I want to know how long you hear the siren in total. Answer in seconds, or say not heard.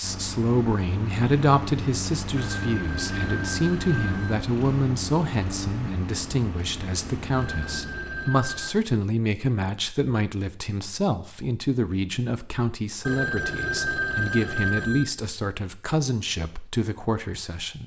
not heard.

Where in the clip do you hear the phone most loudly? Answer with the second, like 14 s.
14 s.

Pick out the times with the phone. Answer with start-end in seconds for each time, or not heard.
2.4-4.4, 7.3-8.8, 13.0-15.1.